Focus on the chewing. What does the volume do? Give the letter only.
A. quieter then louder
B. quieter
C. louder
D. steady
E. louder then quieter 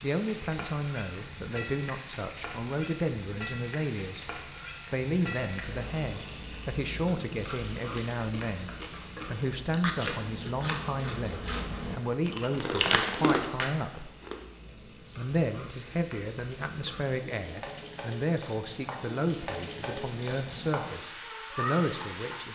C.